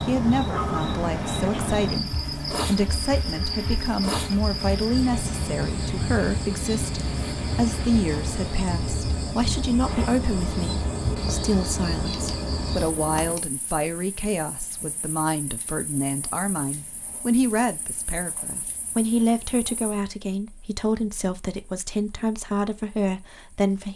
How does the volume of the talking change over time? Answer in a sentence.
The loudness of the talking stays about the same.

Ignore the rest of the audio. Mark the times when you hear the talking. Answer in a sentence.
You can hear the talking from 0.1 to 23.9 s.